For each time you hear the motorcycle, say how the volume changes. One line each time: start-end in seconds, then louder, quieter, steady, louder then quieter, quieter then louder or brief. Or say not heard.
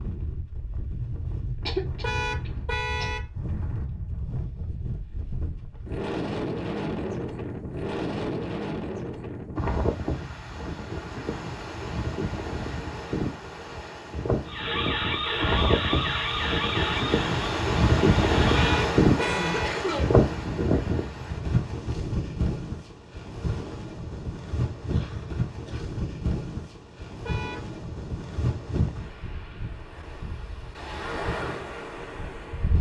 not heard.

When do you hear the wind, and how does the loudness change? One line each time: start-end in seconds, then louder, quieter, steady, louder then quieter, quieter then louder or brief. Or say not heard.
0.0-32.7 louder then quieter.